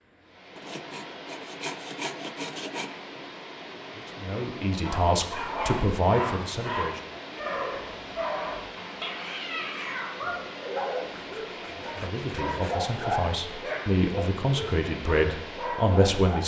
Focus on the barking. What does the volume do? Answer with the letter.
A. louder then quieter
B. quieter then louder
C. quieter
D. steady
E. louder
D.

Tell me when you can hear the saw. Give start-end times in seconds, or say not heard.
0.6-3.0, 11.1-12.9.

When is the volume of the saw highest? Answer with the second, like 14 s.
2 s.